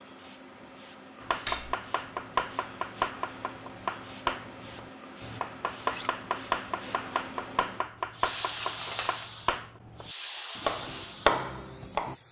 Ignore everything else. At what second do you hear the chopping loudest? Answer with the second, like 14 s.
11 s.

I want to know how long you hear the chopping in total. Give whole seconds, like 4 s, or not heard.
11 s.